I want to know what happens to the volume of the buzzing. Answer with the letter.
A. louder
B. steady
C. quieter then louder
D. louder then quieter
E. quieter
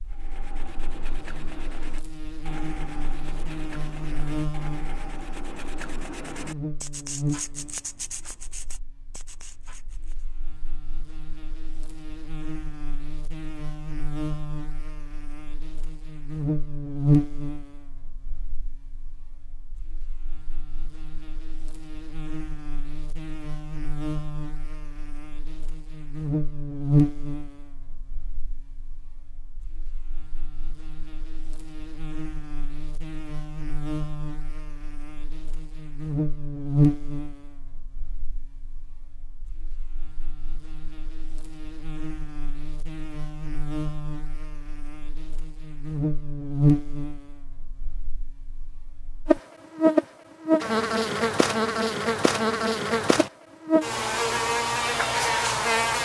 A.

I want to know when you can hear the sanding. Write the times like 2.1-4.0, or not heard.
0.1-10.2.